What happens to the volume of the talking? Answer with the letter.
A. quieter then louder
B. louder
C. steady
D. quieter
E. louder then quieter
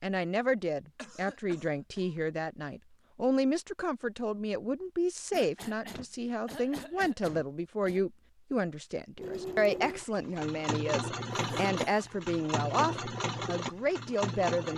C.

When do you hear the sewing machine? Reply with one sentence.
You can hear the sewing machine from 9.2 to 14.7 s.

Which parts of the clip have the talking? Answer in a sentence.
You can hear the talking from 0.0 to 14.7 s.